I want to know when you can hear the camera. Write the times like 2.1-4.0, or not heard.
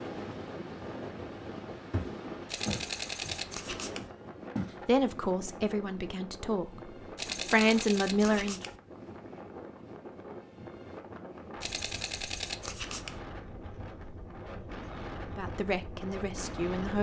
2.5-4.1, 7.2-8.8, 11.6-13.2.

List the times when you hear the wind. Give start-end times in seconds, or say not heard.
0.0-16.9.